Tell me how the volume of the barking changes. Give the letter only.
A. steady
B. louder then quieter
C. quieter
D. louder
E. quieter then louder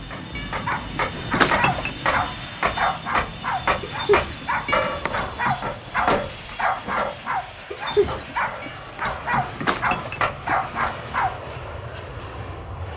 A.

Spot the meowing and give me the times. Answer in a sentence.
You can hear the meowing from 0.3 to 1.9 s, from 4.7 to 5.5 s and from 8.6 to 10.6 s.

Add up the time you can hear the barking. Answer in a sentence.
You can hear the barking for 11 seconds altogether.